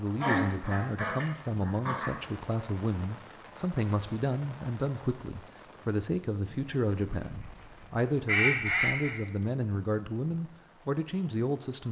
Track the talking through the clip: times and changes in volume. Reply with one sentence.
The talking can be heard from 0.0 to 11.8 s, at a steady volume.